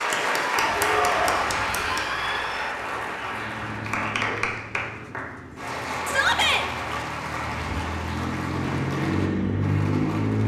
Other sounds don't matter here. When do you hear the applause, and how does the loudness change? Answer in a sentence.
You can hear the applause from 0.0 to 10.4 s, getting quieter.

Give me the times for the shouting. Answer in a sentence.
You can hear the shouting from 0.8 to 2.8 s and from 6.0 to 6.7 s.